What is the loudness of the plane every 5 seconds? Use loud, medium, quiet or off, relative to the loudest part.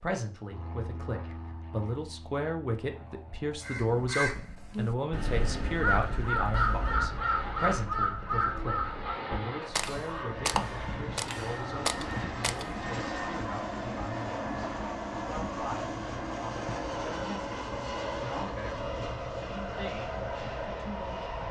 quiet, medium, loud, loud, loud.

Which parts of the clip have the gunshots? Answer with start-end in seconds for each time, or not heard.
9.7-12.8.